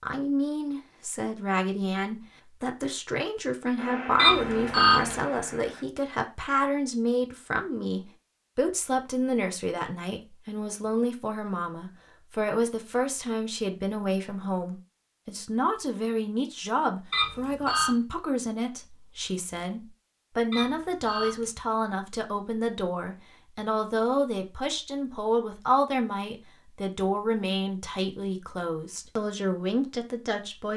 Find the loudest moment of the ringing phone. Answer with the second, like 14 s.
5 s.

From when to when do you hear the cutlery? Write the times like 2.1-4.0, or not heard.
not heard.